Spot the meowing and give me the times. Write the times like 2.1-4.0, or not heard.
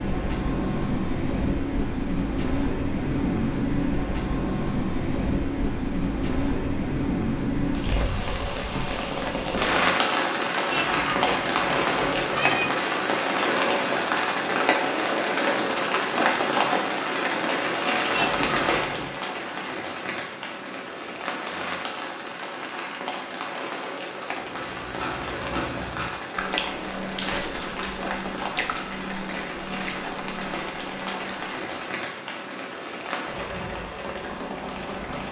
10.7-12.7, 18.1-19.1.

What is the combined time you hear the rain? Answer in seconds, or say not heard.
35 s.